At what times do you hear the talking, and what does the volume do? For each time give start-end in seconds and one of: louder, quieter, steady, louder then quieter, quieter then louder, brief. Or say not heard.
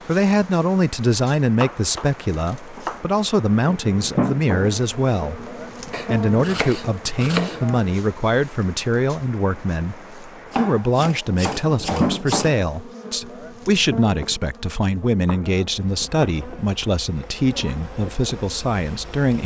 0.1-19.4 steady.